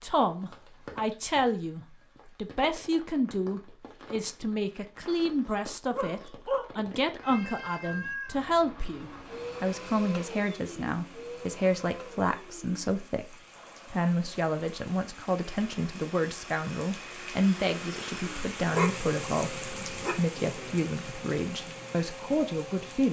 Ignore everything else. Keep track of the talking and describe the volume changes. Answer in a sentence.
The loudness of the talking stays about the same.